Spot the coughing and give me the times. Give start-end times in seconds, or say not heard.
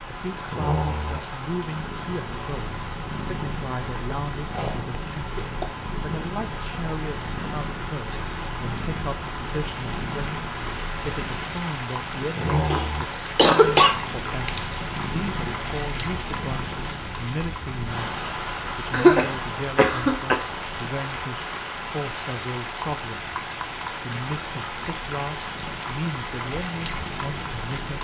4.5-5.7, 12.7-14.6, 18.9-20.5.